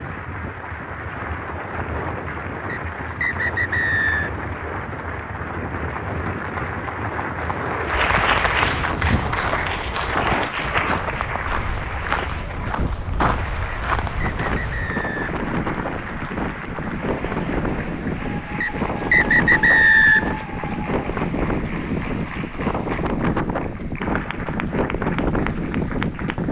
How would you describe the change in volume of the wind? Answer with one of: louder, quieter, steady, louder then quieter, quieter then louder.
louder.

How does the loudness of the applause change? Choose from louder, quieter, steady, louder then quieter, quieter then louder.
louder then quieter.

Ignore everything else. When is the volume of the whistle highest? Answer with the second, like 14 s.
20 s.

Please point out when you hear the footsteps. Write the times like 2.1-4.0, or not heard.
7.9-14.9.